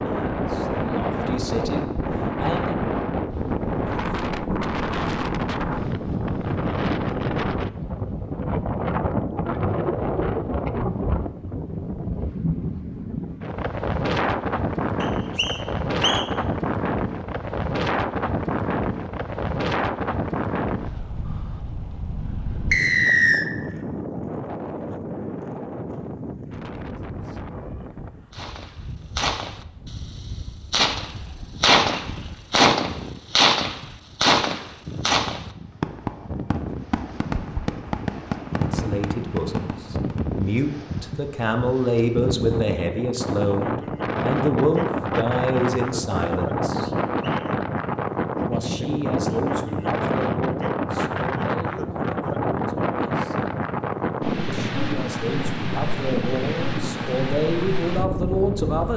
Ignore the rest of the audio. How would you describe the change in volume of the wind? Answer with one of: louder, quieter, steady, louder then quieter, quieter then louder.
quieter then louder.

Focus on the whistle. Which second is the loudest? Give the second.
23 s.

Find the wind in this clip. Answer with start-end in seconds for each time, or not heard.
0.0-58.9.